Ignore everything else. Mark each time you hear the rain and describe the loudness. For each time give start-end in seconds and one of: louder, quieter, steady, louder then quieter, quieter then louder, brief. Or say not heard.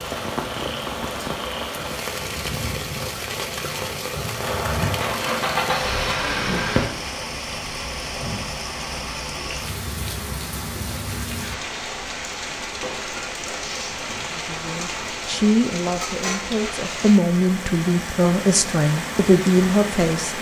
0.0-20.3 steady.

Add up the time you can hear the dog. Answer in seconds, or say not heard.
not heard.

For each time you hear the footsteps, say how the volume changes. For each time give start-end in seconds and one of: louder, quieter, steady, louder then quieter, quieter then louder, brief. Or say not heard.
not heard.